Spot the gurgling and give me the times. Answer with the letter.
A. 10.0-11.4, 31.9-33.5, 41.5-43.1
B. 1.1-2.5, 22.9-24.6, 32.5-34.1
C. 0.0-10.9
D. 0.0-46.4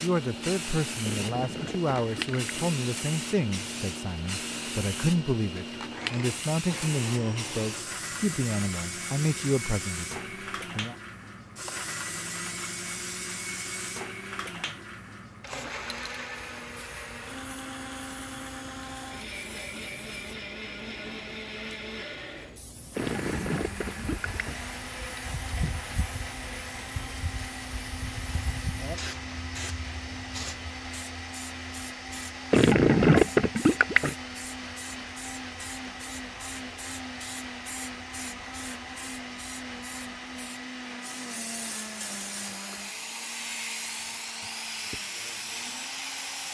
B.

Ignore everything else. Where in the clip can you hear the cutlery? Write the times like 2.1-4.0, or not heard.
not heard.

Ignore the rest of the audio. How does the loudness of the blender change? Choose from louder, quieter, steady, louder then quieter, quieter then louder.
steady.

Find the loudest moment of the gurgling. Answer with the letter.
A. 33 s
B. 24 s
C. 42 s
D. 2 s
A.